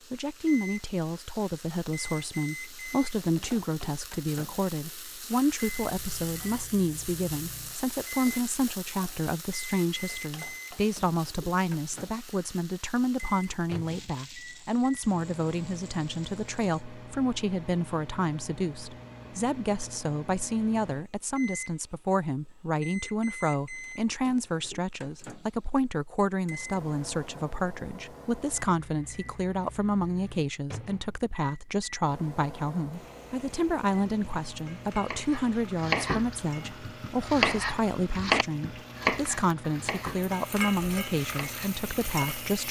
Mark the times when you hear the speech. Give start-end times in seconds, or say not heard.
0.1-42.6.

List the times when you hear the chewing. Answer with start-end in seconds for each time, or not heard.
not heard.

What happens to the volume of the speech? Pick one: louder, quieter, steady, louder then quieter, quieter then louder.
steady.